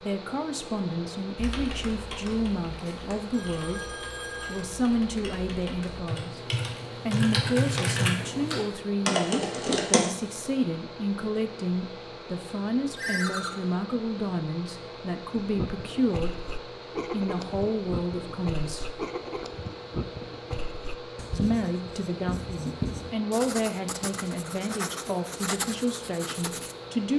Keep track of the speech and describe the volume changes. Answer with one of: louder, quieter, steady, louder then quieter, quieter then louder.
steady.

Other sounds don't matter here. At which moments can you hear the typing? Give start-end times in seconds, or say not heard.
1.4-10.1.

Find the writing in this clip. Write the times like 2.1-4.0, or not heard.
15.3-26.8.